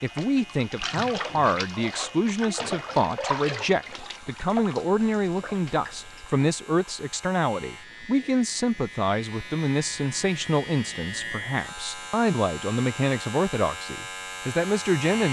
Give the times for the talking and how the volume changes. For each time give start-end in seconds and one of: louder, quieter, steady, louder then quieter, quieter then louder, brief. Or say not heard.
0.0-15.2 steady.